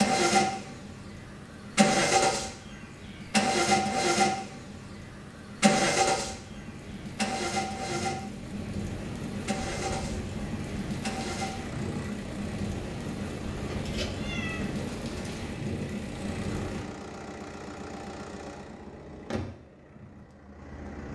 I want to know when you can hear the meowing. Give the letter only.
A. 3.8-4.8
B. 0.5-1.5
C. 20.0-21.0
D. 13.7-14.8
D.